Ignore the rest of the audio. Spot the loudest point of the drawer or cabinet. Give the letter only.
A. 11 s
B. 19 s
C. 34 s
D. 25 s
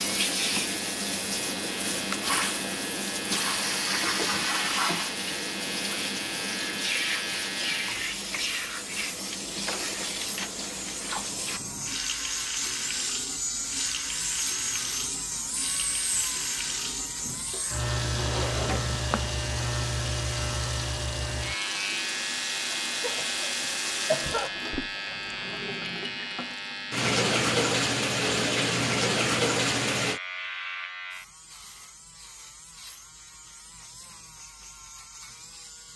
B.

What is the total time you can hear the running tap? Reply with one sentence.
The running tap can be heard for 30 seconds in total.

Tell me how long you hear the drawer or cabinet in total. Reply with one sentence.
The drawer or cabinet can be heard for 3 seconds in total.